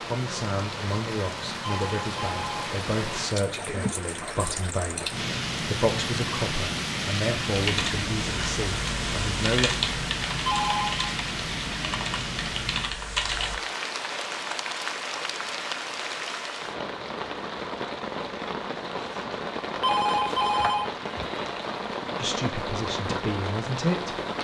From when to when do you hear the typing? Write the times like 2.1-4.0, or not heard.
7.5-13.6.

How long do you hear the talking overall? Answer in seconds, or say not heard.
12 s.